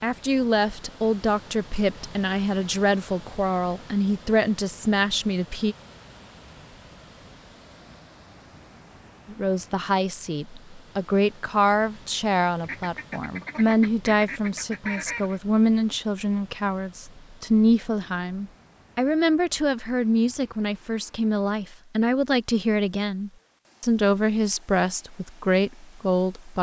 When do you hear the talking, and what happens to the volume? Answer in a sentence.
The talking can be heard from 0.0 to 5.8 s, at a steady volume; and from 9.2 to 26.5 s, at a steady volume.